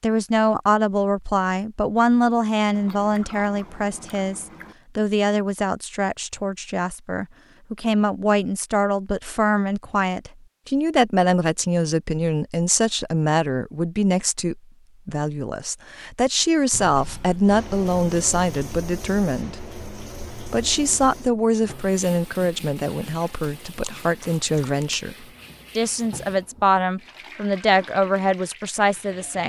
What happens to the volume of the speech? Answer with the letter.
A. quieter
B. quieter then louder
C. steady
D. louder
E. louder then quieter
C.